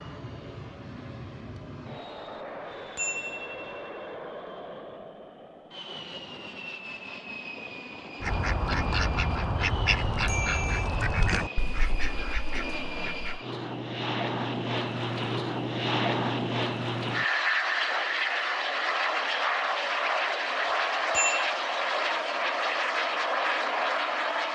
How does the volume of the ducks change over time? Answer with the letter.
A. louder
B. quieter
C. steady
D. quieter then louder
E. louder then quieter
B.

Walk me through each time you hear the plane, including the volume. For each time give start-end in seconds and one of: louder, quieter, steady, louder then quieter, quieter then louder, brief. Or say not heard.
0.0-24.5 louder.